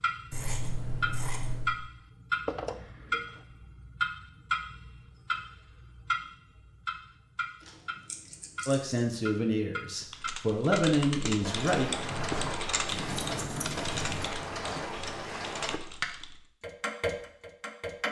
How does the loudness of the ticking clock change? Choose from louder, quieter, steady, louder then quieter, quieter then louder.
quieter then louder.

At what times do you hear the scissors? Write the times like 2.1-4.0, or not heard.
0.3-1.8, 7.7-9.0, 12.8-14.2.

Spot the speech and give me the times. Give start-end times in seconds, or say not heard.
8.7-12.0.